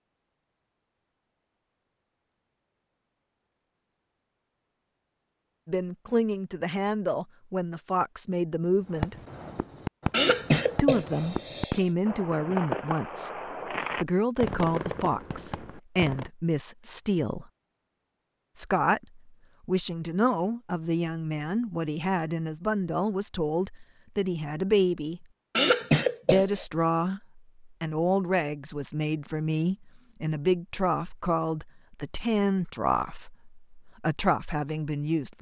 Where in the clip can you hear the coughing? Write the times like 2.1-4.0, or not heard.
10.1-11.8, 25.6-26.6.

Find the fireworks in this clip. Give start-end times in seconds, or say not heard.
8.8-16.3.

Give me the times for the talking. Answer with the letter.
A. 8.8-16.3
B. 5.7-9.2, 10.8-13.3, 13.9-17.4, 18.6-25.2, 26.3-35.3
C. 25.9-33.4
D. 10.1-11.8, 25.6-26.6
B.